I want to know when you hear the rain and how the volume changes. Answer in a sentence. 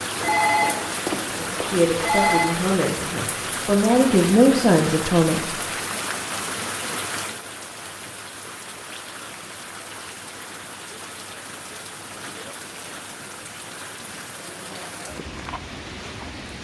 You can hear the rain from 0.0 to 16.6 s, getting quieter.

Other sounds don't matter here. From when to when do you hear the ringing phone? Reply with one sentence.
The ringing phone can be heard from 0.1 to 2.5 s.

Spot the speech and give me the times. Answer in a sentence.
You can hear the speech from 1.4 to 6.0 s.